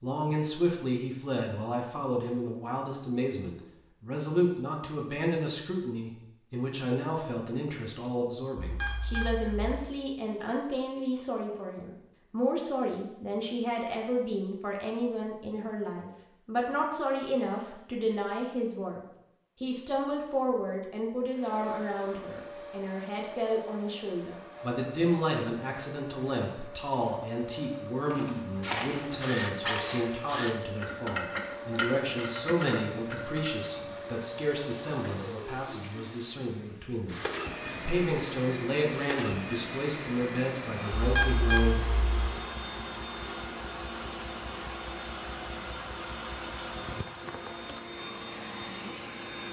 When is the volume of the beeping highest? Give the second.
41 s.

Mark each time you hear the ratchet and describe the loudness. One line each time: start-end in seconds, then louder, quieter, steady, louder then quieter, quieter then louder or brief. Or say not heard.
28.1-33.7 steady.